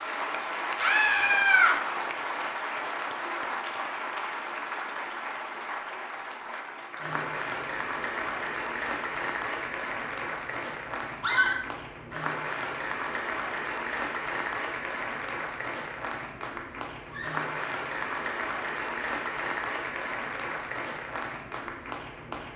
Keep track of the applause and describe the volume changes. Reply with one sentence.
The loudness of the applause stays about the same.